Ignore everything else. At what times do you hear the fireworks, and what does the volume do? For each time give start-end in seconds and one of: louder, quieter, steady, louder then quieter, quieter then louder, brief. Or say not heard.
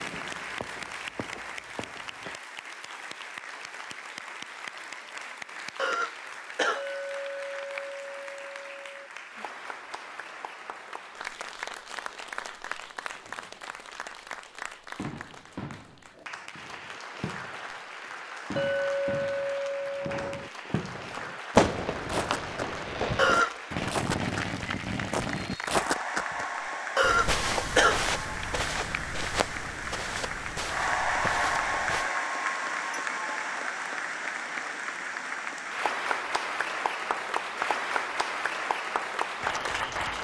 0.0-2.4 brief
14.9-25.6 louder then quieter.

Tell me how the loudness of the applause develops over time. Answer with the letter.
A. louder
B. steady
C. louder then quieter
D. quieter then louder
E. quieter
A.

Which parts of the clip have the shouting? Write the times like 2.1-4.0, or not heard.
not heard.